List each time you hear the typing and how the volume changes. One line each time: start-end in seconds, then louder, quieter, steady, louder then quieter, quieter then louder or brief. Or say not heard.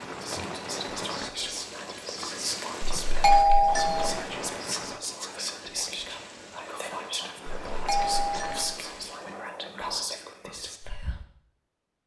not heard.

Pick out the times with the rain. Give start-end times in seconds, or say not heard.
0.0-9.4.